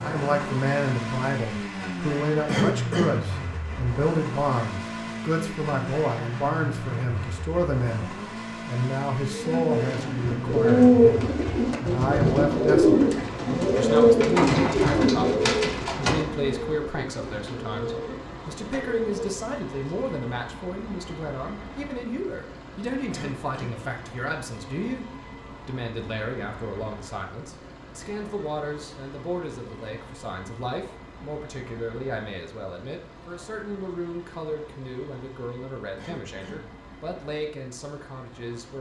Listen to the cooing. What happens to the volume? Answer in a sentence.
The loudness of the cooing goes down.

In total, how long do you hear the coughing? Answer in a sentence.
You can hear the coughing for 2 seconds altogether.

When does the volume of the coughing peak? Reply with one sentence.
The volume of the coughing peaks at 3 seconds.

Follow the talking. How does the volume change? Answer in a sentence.
The volume of the talking goes down.